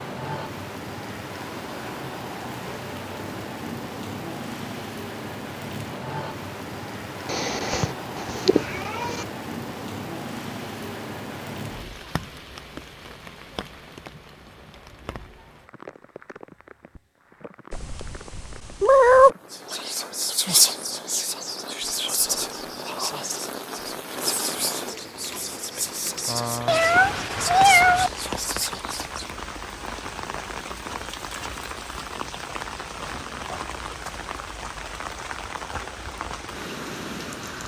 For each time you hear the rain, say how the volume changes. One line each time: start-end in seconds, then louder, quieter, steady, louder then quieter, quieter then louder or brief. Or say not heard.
0.0-37.6 quieter then louder.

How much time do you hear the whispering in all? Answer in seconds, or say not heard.
10 s.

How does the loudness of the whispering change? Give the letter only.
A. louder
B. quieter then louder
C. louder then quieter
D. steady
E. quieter
E.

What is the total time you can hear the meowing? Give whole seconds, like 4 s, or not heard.
5 s.